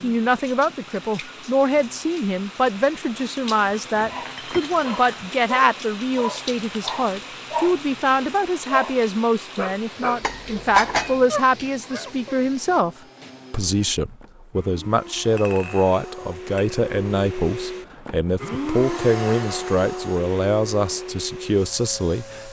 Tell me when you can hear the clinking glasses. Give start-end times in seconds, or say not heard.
3.8-5.3, 10.2-11.2, 15.3-16.8.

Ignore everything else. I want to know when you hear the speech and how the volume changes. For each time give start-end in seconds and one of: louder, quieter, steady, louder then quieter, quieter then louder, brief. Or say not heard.
0.0-22.4 steady.